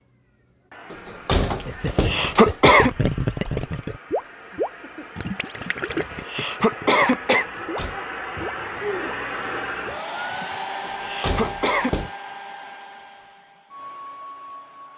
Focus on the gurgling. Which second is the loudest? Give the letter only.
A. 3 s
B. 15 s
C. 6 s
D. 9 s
A.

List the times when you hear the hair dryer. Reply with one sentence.
The hair dryer can be heard from 0.0 to 14.9 s.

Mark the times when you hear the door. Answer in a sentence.
You can hear the door from 0.9 to 2.5 s, from 7.5 to 8.0 s and from 10.8 to 12.1 s.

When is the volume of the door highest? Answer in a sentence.
The volume of the door peaks at 1 second.